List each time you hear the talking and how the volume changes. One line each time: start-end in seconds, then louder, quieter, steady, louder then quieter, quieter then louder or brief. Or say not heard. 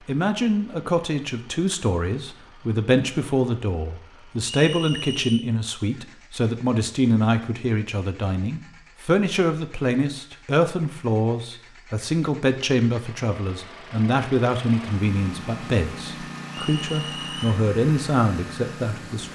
0.1-19.2 steady.